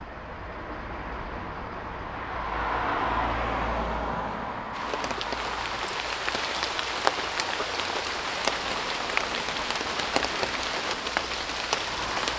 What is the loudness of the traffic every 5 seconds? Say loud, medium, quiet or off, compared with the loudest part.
loud, medium, medium.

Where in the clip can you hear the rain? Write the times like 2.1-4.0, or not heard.
4.7-12.3.